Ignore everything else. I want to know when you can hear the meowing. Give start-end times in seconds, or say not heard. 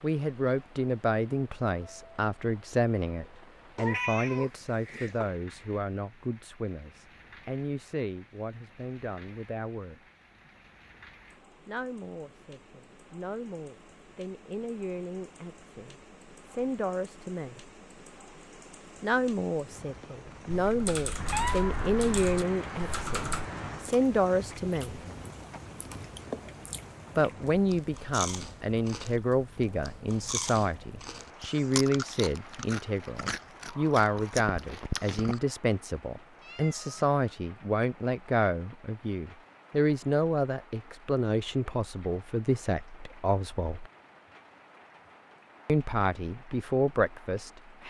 3.8-5.3, 21.1-23.9, 36.4-37.0.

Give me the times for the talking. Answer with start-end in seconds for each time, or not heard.
0.0-10.0, 11.7-17.6, 19.0-25.0, 27.1-43.9, 45.6-47.8.